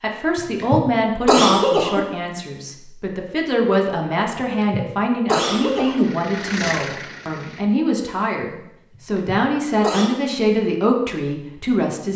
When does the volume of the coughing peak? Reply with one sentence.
The loudest moment of the coughing is at 1 second.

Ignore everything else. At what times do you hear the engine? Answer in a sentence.
You can hear the engine from 5.6 to 7.7 s.